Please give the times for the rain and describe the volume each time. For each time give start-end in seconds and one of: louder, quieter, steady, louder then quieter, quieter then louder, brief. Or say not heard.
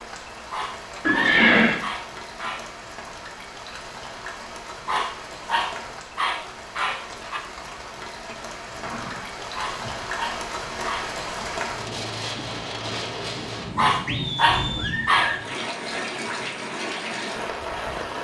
0.0-18.2 louder.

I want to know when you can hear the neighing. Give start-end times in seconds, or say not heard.
1.1-1.8, 8.7-10.1, 14.1-15.4.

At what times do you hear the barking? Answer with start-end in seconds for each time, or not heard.
0.5-2.8, 4.8-7.4, 9.6-11.2, 13.8-15.4.